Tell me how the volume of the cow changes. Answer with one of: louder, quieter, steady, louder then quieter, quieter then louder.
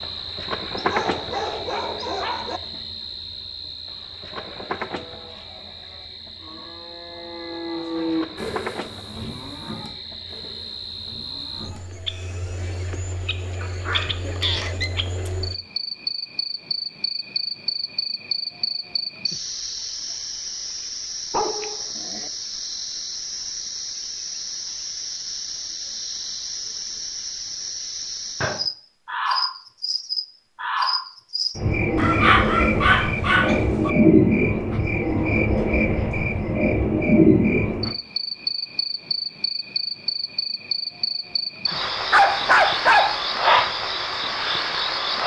louder then quieter.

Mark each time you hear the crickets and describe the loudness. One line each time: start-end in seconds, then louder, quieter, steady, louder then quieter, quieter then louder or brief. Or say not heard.
0.0-45.2 louder.